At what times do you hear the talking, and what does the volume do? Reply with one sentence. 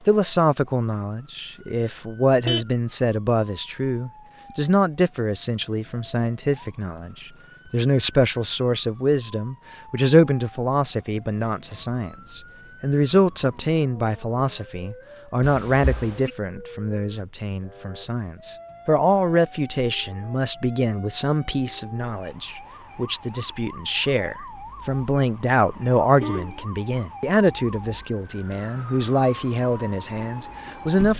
You can hear the talking from 0.1 to 31.1 s, at a steady volume.